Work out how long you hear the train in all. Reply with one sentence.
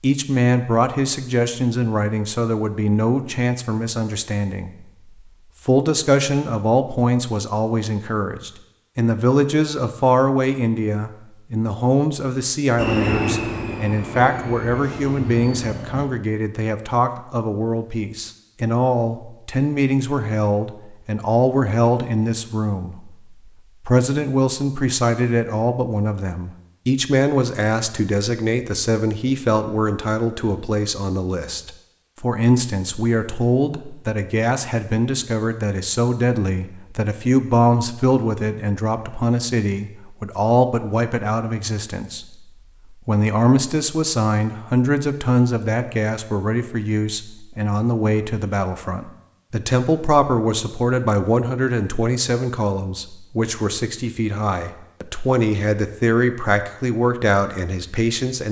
You can hear the train for 3 seconds altogether.